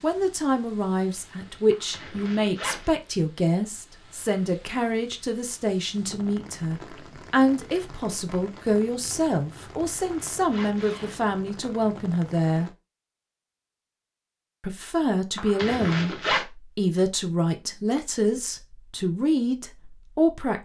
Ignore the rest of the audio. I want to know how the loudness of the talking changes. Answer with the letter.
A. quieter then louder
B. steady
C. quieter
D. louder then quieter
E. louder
B.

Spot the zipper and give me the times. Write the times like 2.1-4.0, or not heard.
1.7-2.9, 9.7-11.2, 15.3-16.4.